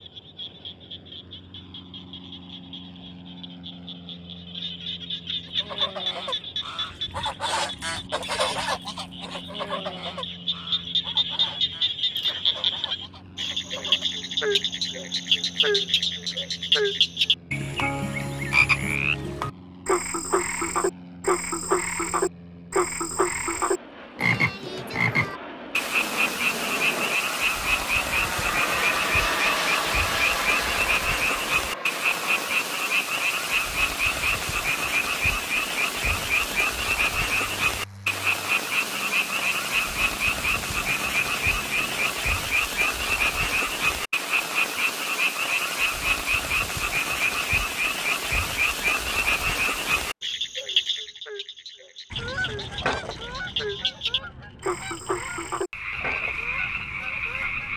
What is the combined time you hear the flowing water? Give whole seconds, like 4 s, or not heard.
not heard.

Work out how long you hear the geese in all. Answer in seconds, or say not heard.
14 s.